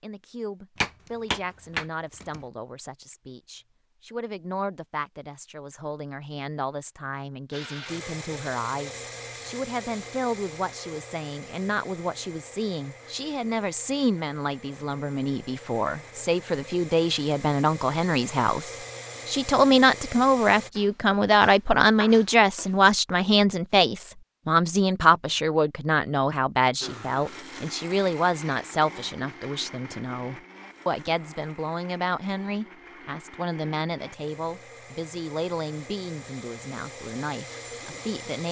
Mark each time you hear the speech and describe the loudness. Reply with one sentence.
The speech can be heard from 0.0 to 38.4 s, getting louder then quieter.